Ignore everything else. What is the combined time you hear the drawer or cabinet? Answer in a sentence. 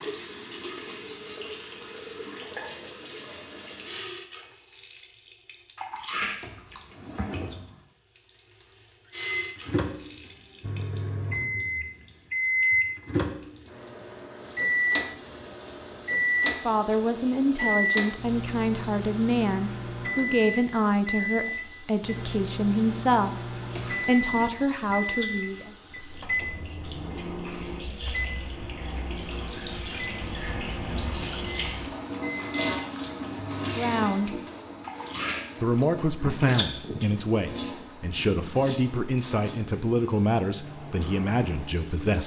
The drawer or cabinet can be heard for 2 seconds in total.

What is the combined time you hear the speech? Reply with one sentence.
You can hear the speech for 17 seconds altogether.